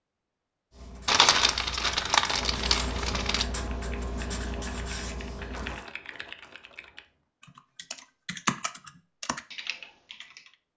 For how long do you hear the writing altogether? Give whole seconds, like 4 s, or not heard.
5 s.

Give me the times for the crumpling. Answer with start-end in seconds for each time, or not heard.
1.1-3.5, 5.5-7.0.